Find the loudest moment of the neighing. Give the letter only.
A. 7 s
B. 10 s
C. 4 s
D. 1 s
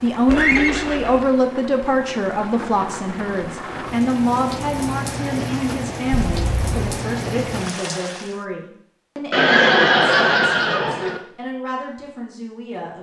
B.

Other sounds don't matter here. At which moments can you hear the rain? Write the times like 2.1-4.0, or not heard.
0.0-8.4.